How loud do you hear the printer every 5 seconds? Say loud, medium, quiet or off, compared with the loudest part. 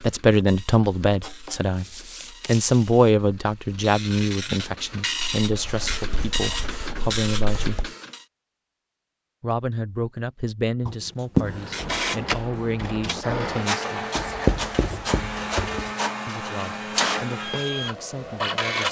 quiet, loud, loud, loud.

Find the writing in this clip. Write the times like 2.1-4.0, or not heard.
1.2-2.8, 5.5-7.9, 10.8-11.6, 14.2-15.8.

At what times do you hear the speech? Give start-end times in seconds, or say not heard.
0.0-1.9, 2.5-7.9, 9.4-14.1, 16.2-18.8.